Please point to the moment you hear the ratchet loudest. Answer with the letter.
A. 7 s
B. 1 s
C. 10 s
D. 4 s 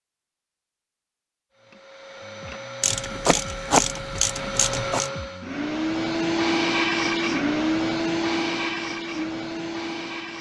D.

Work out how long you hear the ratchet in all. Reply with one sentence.
The ratchet can be heard for 2 seconds in total.